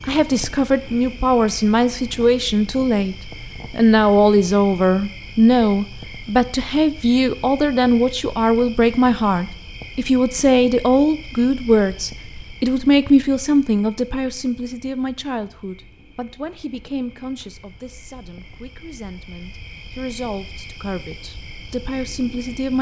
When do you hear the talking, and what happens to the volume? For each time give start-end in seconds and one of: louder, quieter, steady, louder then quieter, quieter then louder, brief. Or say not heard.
0.1-22.7 quieter.